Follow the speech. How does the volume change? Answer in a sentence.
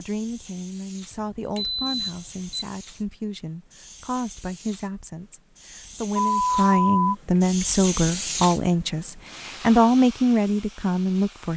The loudness of the speech goes up.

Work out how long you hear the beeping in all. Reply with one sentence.
The beeping can be heard for 3 seconds in total.